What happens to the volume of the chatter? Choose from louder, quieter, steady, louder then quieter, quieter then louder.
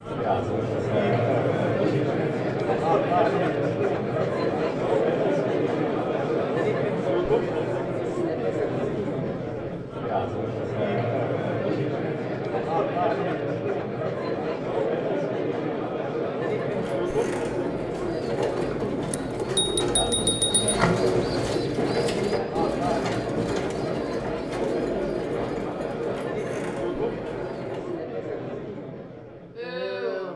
quieter.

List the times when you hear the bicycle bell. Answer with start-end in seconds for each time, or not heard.
19.1-20.8.